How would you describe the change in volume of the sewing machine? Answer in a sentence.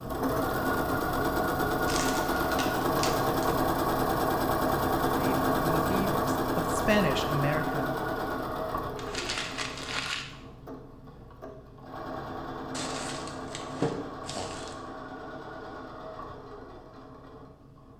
The loudness of the sewing machine goes down.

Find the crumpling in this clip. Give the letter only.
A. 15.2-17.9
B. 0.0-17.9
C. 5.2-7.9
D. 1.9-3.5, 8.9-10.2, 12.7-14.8
D.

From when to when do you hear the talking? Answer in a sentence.
The talking can be heard from 5.2 to 7.9 s.